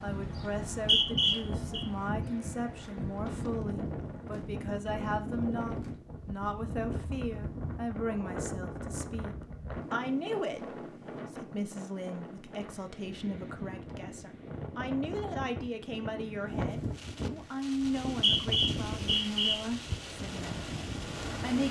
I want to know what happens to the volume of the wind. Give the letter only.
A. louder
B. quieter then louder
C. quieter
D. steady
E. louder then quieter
D.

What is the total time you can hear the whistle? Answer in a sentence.
The whistle can be heard for 3 seconds in total.